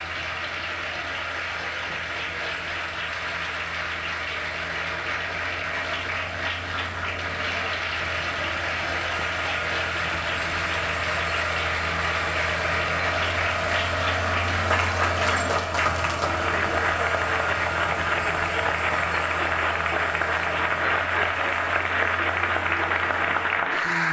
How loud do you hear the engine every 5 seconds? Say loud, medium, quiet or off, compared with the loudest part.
medium, medium, loud, loud, medium.